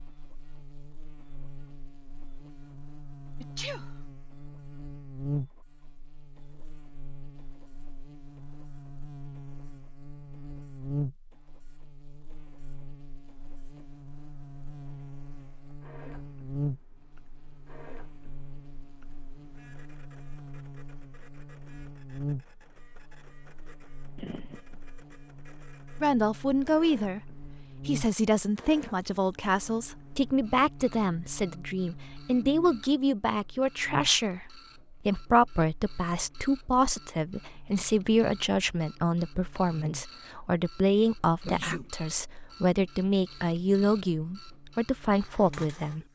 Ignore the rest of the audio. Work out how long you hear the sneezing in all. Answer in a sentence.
You can hear the sneezing for 2 seconds altogether.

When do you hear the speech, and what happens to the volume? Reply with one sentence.
The speech can be heard from 26.0 to 46.0 s, at a steady volume.